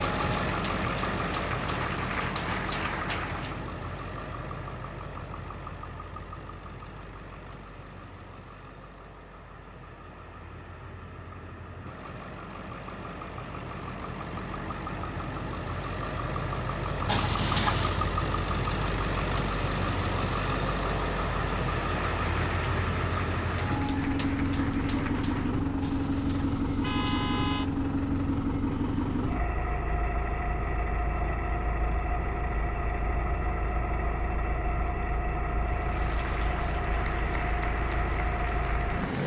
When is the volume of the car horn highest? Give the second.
18 s.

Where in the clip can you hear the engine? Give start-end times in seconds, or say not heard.
0.0-39.2.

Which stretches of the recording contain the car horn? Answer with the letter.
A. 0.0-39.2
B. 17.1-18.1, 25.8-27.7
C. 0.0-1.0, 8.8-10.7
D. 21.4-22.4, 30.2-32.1
B.